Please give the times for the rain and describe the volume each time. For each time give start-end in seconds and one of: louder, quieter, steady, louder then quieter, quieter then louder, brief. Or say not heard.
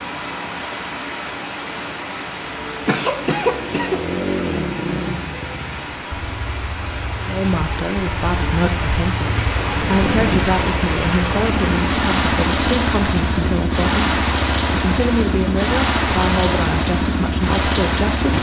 0.0-18.3 louder.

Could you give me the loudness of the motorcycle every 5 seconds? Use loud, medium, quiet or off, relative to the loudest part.
loud, medium, loud, loud.